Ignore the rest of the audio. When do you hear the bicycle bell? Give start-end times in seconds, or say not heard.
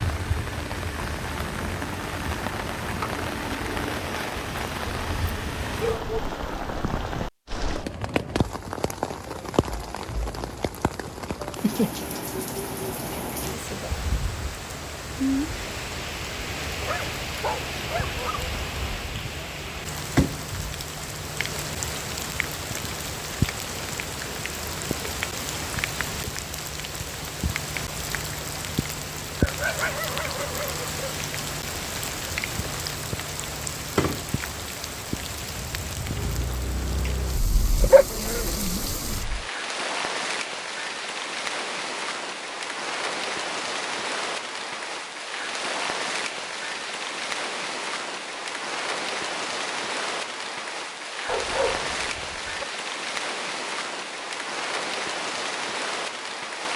not heard.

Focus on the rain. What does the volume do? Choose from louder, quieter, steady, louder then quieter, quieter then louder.
steady.